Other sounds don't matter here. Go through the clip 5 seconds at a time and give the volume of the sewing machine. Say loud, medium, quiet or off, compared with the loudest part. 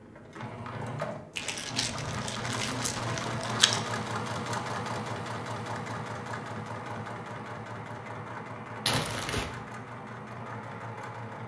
loud, loud, medium.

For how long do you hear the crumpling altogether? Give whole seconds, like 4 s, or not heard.
3 s.